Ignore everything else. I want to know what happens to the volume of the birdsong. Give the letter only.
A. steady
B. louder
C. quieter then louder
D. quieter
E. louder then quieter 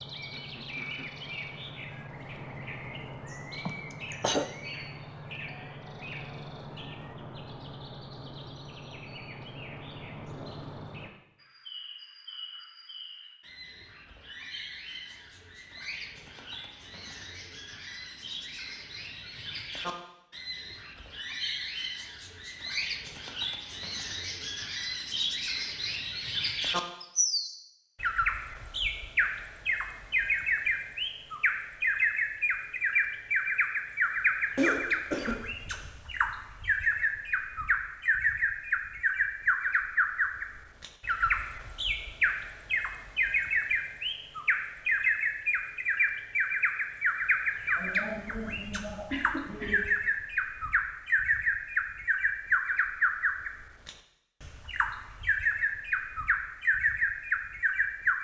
B.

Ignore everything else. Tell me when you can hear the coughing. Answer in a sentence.
The coughing can be heard from 3.6 to 4.5 s, from 34.5 to 35.5 s and from 47.8 to 50.0 s.